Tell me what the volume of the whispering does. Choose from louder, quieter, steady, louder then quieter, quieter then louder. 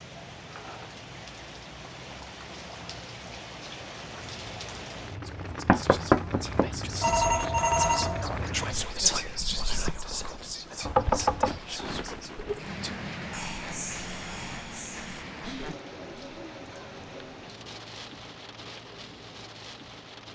louder then quieter.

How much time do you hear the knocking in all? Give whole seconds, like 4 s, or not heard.
2 s.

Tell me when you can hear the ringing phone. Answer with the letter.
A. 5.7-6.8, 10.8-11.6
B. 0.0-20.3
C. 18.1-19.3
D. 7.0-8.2
D.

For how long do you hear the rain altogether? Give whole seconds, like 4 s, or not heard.
20 s.